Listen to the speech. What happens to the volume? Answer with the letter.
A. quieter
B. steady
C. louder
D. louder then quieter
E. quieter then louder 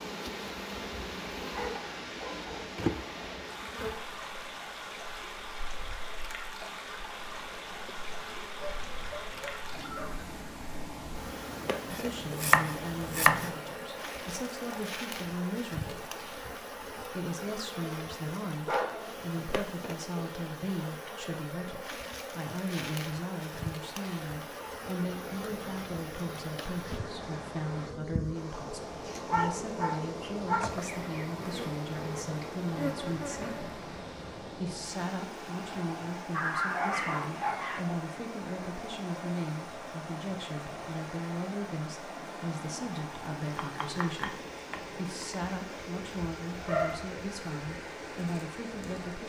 B.